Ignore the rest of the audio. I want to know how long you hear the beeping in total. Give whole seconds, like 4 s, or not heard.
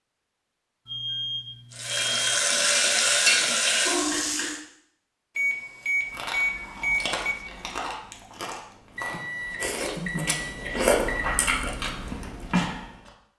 6 s.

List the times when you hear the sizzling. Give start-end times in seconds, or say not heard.
1.7-4.6.